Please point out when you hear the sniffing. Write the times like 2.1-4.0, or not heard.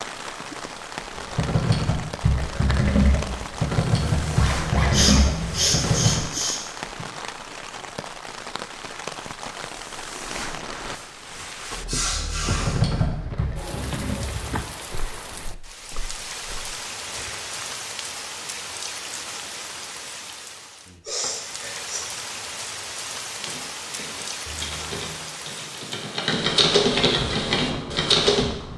4.9-7.0, 11.8-12.8, 21.1-22.1.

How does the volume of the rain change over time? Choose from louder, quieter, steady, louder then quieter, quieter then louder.
steady.